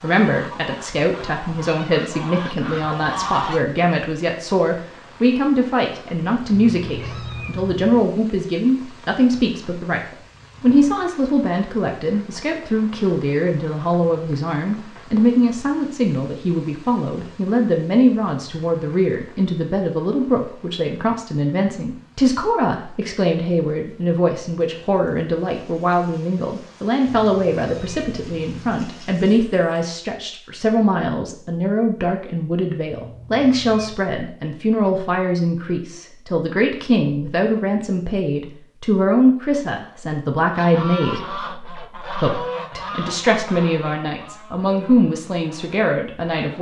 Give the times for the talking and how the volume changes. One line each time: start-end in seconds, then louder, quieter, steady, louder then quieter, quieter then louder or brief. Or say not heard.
0.0-46.5 steady.